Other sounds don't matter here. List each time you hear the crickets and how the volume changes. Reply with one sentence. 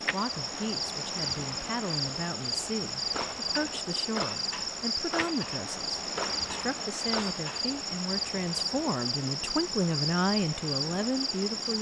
The crickets can be heard from 0.0 to 11.7 s, at a steady volume.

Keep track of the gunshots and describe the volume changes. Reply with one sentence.
The volume of the gunshots goes down, then up.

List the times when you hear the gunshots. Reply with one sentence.
The gunshots can be heard from 3.1 to 7.7 s.